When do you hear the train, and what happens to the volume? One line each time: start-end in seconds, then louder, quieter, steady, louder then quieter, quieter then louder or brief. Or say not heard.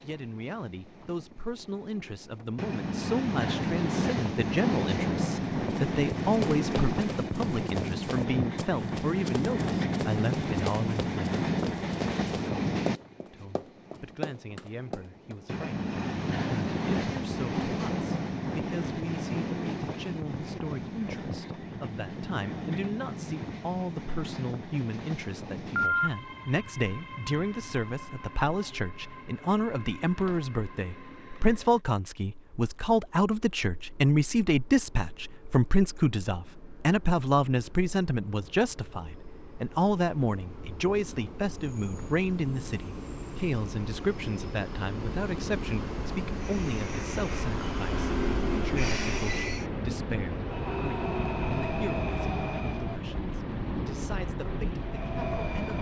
0.0-55.7 quieter then louder.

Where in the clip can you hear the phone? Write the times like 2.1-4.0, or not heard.
25.6-26.1.